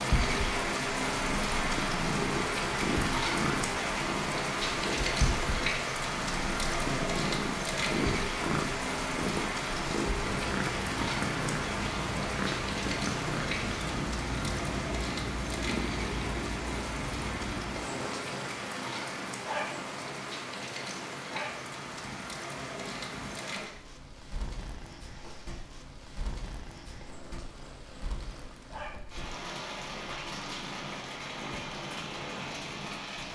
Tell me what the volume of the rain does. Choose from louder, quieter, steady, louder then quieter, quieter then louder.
quieter.